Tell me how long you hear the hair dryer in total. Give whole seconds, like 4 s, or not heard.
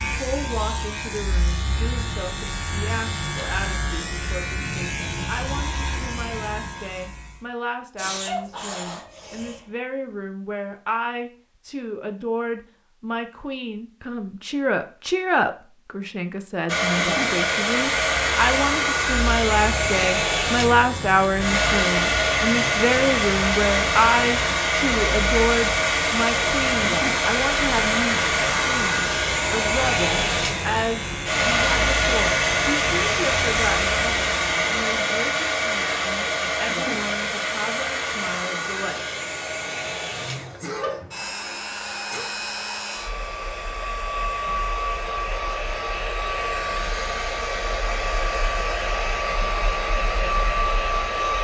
35 s.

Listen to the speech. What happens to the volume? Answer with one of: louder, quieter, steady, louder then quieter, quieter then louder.
louder then quieter.